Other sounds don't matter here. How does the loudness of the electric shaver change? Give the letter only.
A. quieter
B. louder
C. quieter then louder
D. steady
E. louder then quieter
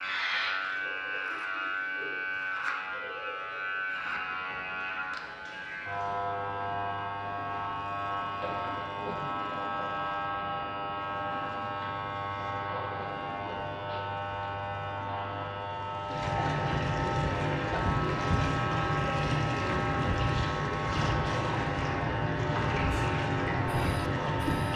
D.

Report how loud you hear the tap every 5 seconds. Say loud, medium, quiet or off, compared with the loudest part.
quiet, quiet, quiet, loud, loud.